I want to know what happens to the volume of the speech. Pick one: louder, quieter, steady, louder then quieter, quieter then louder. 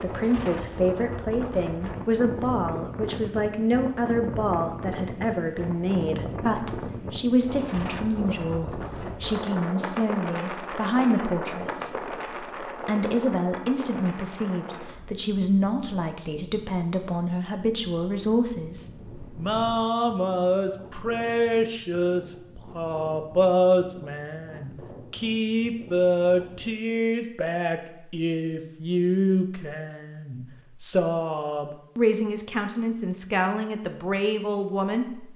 steady.